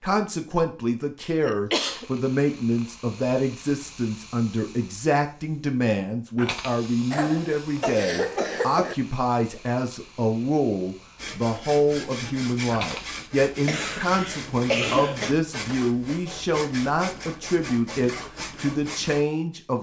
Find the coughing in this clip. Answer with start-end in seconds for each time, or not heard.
1.2-2.0, 7.1-8.9, 13.7-15.3.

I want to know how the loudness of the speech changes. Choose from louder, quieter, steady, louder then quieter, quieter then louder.
steady.